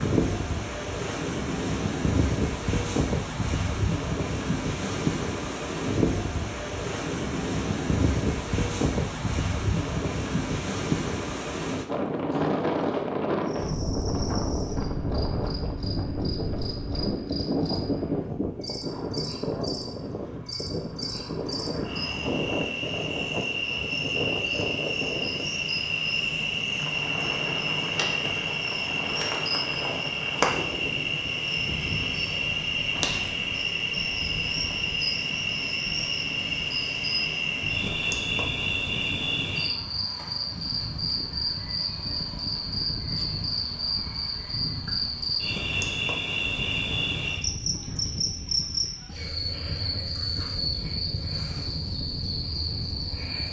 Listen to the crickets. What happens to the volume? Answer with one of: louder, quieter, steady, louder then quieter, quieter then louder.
louder.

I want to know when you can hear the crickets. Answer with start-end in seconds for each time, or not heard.
13.4-53.4.